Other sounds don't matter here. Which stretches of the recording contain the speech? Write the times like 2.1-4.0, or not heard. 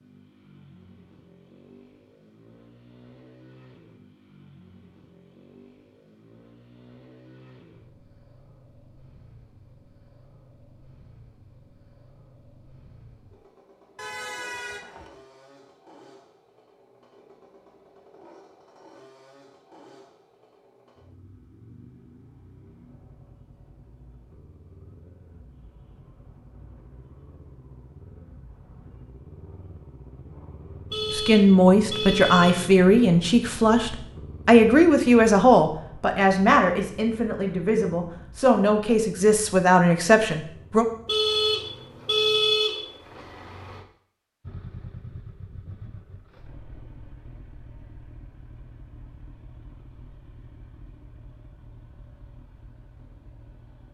31.1-40.9.